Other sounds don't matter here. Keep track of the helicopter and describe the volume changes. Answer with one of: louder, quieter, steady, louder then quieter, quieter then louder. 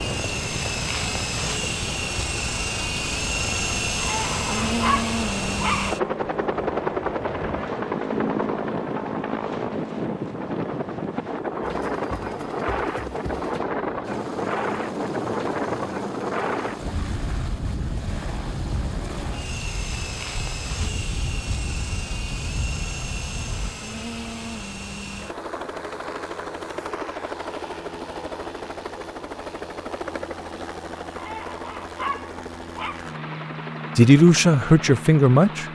quieter.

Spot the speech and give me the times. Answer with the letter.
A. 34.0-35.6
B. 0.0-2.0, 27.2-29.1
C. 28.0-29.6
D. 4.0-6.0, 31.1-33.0
A.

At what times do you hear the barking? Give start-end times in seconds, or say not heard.
4.0-6.0, 31.1-33.0.